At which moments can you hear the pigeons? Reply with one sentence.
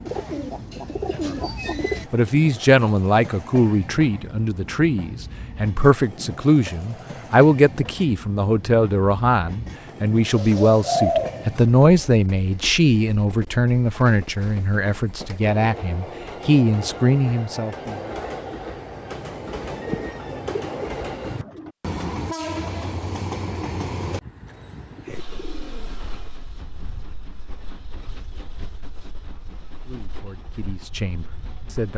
The pigeons can be heard from 0.1 to 2.0 s, from 10.3 to 12.2 s, from 19.8 to 21.8 s and from 24.4 to 26.1 s.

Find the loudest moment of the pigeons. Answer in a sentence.
The volume of the pigeons peaks at 11 seconds.